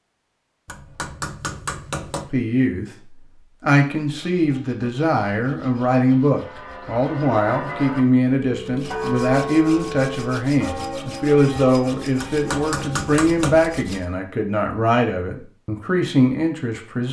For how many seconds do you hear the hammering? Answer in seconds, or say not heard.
3 s.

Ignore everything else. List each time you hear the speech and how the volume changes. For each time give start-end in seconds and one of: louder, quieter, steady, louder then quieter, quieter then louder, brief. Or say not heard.
2.3-17.0 steady.